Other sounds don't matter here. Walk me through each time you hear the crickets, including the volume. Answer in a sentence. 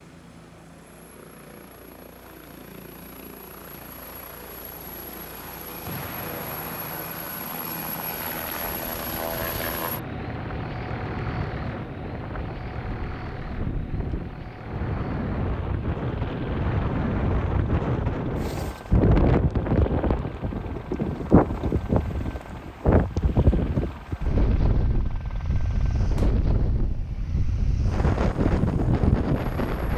The crickets can't be heard in this clip.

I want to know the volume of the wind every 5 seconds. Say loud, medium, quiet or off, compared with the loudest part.
off, quiet, medium, loud, loud, loud.